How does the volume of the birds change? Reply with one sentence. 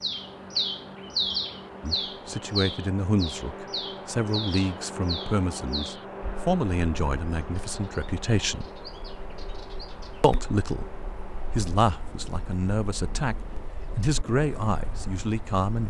The loudness of the birds goes down.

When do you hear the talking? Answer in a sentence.
The talking can be heard from 1.8 to 8.7 s, from 10.2 to 10.9 s, from 11.5 to 13.3 s and from 13.9 to 15.8 s.